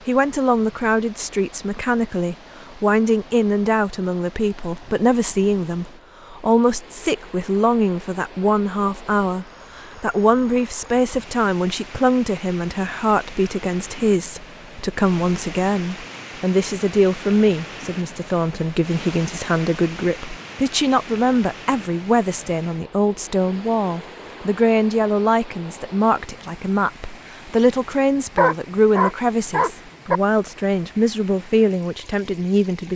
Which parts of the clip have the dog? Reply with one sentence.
The dog can be heard from 28.4 to 30.2 s.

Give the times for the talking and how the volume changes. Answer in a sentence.
You can hear the talking from 0.1 to 32.9 s, at a steady volume.